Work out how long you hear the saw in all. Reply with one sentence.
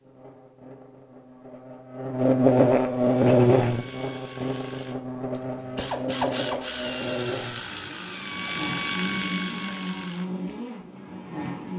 The saw can't be heard in this clip.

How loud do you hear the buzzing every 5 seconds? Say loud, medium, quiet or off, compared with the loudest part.
loud, medium, medium.